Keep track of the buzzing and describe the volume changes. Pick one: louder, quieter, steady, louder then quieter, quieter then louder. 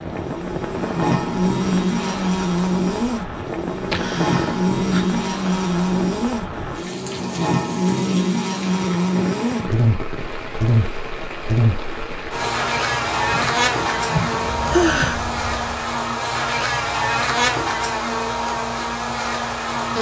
steady.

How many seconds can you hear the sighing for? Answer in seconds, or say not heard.
3 s.